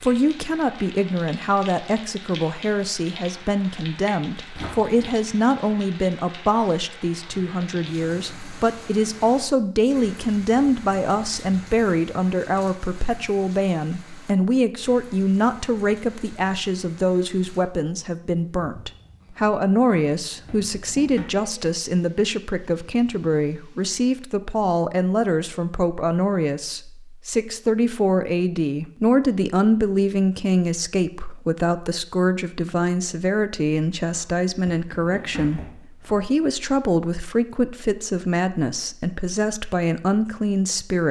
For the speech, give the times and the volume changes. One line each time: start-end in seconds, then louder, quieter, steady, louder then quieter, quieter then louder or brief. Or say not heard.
0.0-41.0 steady.